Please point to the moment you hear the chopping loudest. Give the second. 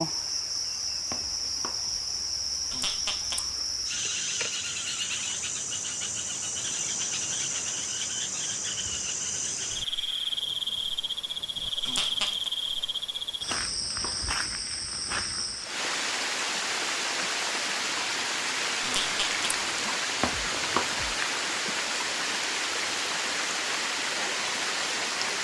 21 s.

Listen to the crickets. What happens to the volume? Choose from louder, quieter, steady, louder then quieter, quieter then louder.
steady.